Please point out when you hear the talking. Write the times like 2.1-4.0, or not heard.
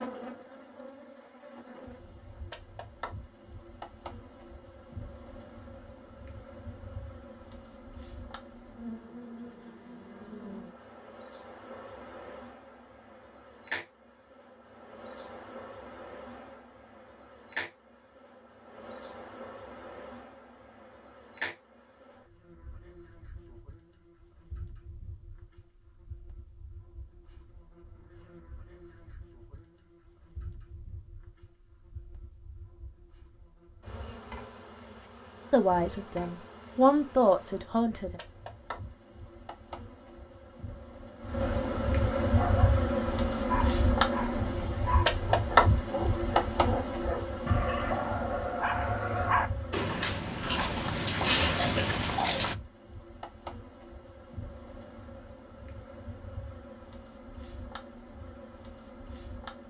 35.5-38.2.